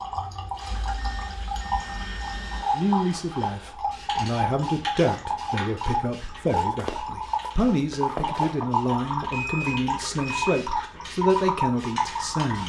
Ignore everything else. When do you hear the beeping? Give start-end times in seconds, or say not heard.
0.7-2.6, 9.2-10.7.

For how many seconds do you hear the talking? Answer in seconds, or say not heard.
10 s.